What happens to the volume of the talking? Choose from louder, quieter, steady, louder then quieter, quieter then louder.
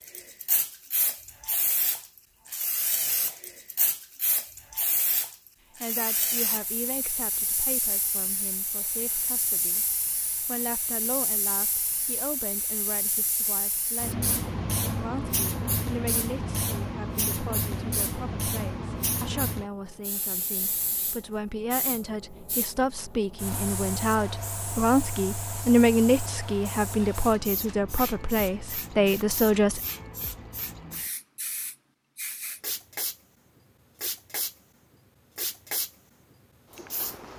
louder.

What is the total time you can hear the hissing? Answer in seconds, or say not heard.
37 s.